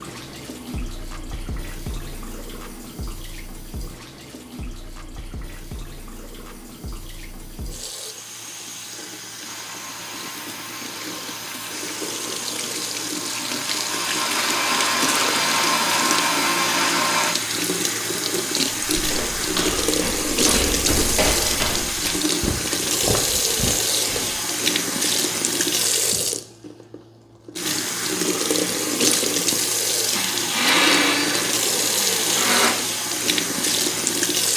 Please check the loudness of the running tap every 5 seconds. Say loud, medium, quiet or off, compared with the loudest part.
quiet, quiet, medium, loud, loud, loud, loud.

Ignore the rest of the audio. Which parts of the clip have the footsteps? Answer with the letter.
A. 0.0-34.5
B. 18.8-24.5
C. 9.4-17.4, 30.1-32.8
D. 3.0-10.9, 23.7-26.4
B.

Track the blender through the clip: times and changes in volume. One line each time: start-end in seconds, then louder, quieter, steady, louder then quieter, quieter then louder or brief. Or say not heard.
9.4-17.4 louder
30.1-32.8 brief.